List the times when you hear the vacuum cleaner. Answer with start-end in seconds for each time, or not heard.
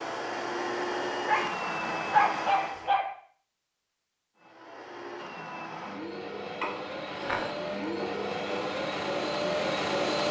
0.0-3.0, 4.3-10.2.